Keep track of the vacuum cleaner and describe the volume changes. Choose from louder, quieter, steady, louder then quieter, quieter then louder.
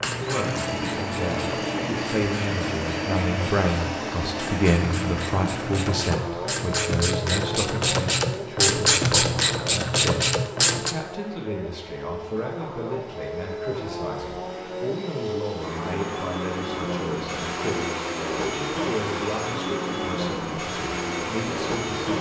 quieter then louder.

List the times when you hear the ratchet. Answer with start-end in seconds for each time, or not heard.
0.0-10.9.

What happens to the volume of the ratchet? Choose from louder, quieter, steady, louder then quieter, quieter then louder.
louder.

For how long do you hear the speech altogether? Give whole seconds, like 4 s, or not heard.
22 s.